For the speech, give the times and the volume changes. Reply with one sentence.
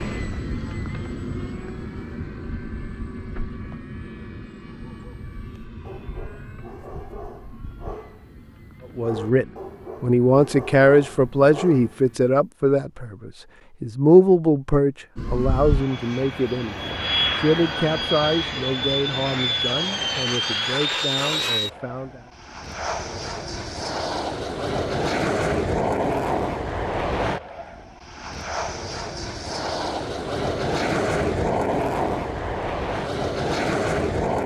You can hear the speech from 8.9 to 22.2 s, getting quieter.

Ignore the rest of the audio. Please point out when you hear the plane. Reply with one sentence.
You can hear the plane from 0.0 to 12.2 s and from 15.2 to 34.4 s.